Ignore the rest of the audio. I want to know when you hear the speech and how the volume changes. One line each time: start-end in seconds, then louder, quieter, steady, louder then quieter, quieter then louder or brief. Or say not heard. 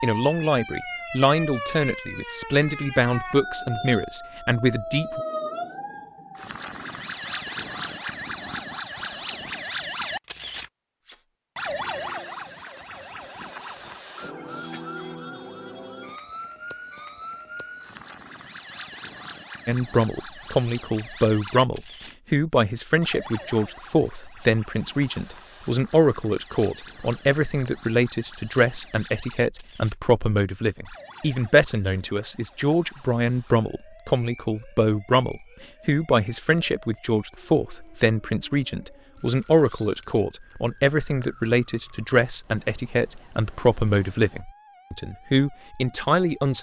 0.0-5.2 steady
19.6-46.5 steady.